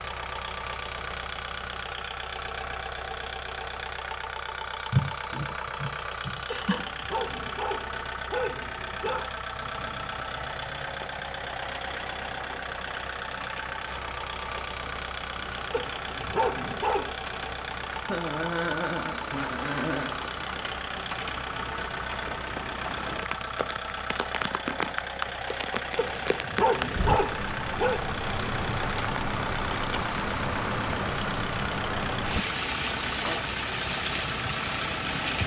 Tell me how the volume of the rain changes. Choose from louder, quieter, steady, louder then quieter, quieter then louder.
louder.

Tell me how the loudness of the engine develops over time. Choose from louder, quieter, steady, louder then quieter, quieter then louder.
steady.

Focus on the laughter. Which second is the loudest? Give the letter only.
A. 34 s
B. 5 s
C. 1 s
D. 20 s
B.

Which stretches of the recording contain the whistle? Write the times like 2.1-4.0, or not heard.
not heard.